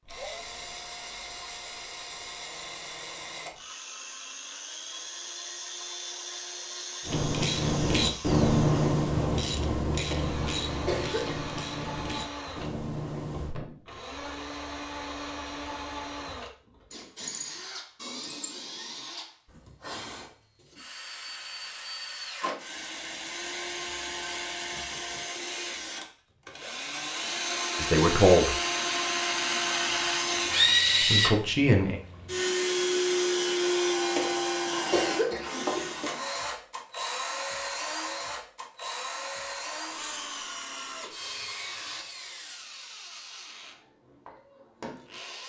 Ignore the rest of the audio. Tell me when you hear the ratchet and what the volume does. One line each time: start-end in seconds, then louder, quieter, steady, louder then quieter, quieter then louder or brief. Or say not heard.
7.0-13.6 quieter.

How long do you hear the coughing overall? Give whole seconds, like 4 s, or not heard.
3 s.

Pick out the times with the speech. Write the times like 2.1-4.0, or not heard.
27.8-28.5, 31.1-32.0.